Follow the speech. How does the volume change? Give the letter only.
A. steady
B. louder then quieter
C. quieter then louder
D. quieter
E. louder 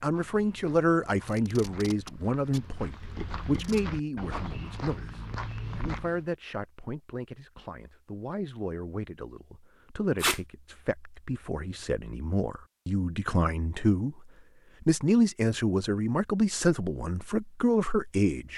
C.